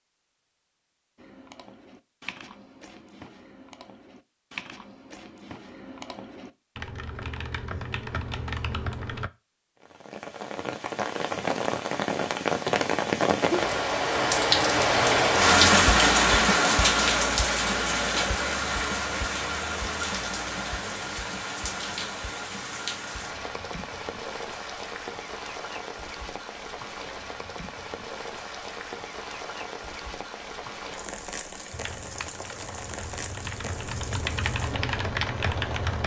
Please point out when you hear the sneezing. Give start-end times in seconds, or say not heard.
not heard.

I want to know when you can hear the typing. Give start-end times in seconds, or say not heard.
1.1-9.3, 31.7-36.0.